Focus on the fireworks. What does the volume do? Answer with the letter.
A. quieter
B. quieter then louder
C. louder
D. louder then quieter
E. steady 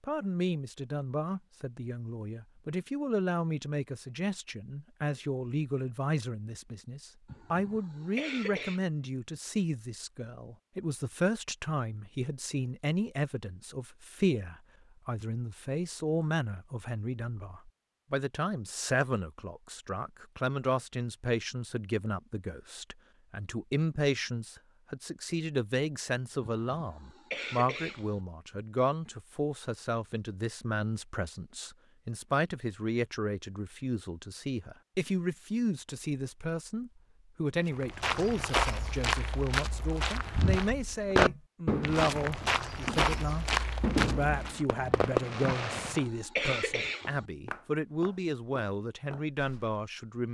B.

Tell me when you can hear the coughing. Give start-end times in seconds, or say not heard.
7.2-8.8, 26.4-28.2, 45.5-47.2.